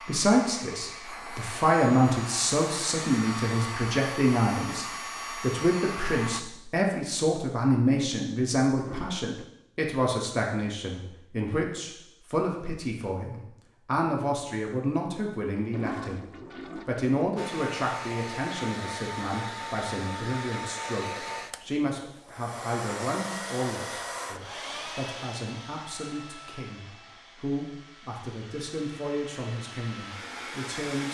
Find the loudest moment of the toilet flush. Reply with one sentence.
The loudest moment of the toilet flush is at 16 seconds.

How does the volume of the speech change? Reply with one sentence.
The volume of the speech goes down.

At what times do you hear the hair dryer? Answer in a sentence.
You can hear the hair dryer from 0.0 to 6.5 s and from 17.4 to 31.0 s.